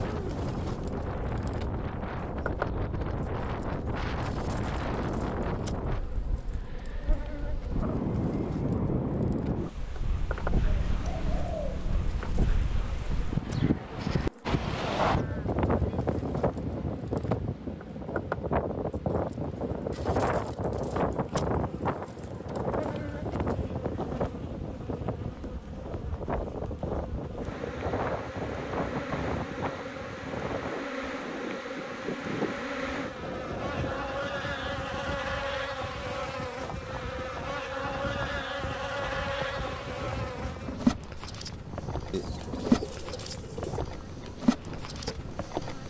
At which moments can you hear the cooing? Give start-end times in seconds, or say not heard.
10.7-12.2, 42.1-43.8.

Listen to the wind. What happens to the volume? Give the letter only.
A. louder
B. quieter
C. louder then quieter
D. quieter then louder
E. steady
B.